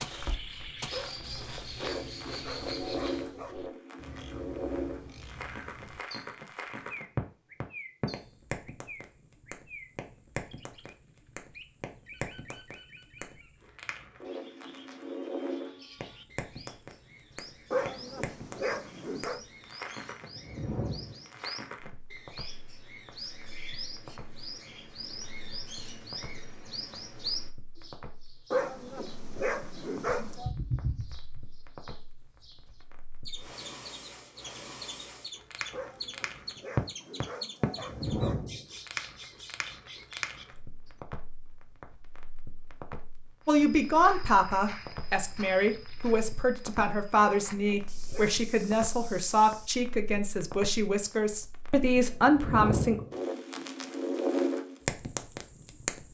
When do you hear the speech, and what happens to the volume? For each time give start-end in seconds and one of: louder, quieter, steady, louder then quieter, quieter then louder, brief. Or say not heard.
43.5-53.0 steady.